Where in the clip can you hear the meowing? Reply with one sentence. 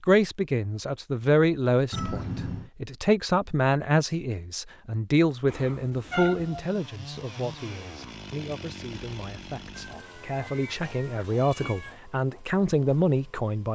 The meowing can be heard from 1.9 to 2.7 s, from 5.5 to 6.7 s and from 9.7 to 11.9 s.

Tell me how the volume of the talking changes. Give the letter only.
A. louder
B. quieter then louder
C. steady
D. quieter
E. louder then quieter
B.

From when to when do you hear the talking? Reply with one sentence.
You can hear the talking from 0.0 to 13.7 s.